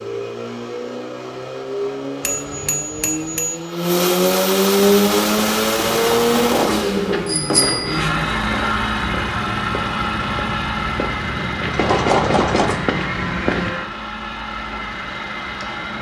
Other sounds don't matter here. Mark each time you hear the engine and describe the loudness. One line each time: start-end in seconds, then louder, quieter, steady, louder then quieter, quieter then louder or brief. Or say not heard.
0.0-15.9 louder then quieter.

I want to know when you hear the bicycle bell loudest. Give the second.
12 s.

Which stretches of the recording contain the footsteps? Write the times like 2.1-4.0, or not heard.
4.8-13.8.